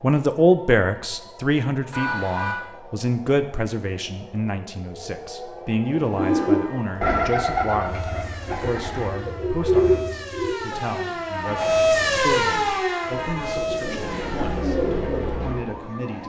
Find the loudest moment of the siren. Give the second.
12 s.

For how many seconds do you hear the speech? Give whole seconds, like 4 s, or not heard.
16 s.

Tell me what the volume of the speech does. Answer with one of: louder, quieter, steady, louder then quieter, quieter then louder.
quieter.